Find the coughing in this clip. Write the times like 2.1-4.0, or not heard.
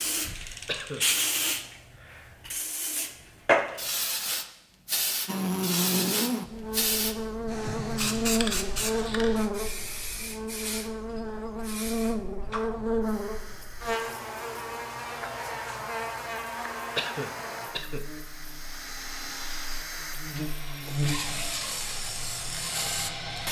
0.7-1.1, 16.9-18.1.